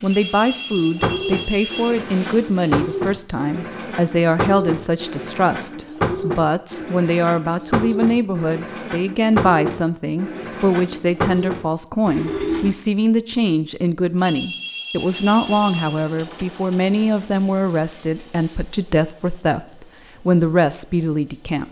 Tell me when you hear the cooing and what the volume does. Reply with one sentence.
You can hear the cooing from 0.8 to 12.8 s, at a steady volume.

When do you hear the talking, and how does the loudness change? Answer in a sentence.
The talking can be heard from 0.0 to 21.6 s, at a steady volume.